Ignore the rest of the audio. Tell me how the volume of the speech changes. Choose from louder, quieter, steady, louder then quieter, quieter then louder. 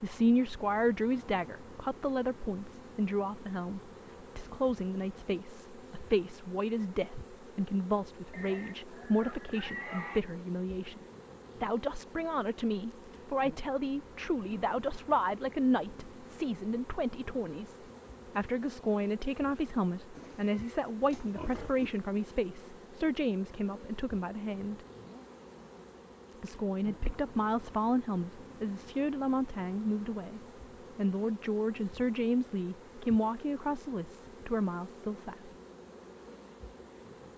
steady.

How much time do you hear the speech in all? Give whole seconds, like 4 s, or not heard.
33 s.